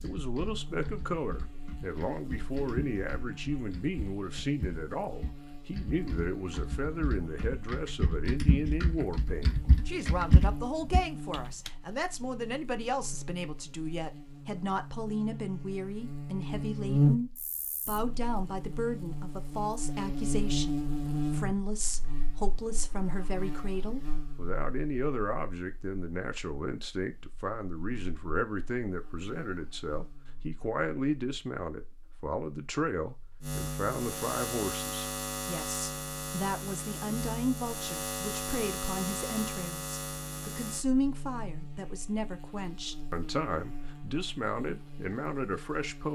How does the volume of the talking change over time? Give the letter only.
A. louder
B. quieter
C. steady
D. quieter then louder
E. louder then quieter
C.